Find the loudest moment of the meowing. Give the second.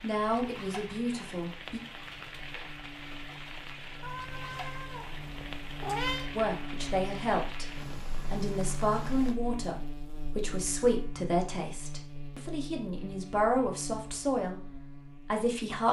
6 s.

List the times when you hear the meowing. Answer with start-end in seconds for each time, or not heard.
4.0-6.3.